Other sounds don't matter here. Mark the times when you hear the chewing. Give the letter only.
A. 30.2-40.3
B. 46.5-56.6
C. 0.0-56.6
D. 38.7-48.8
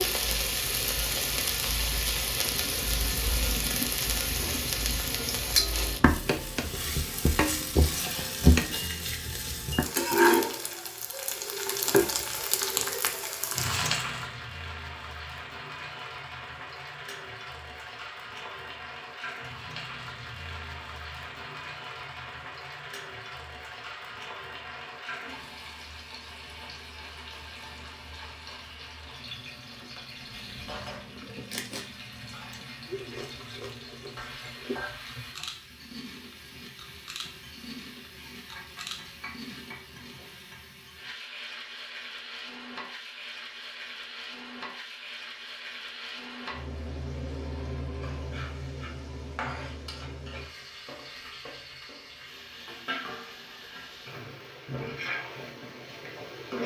A.